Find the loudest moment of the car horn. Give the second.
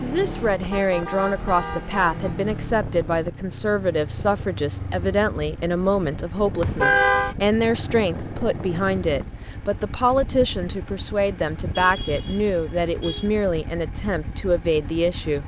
7 s.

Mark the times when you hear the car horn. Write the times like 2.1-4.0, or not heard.
0.7-2.4, 6.6-7.3, 11.7-13.3.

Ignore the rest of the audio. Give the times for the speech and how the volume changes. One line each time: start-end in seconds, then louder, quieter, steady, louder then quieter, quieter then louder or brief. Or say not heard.
0.0-15.4 steady.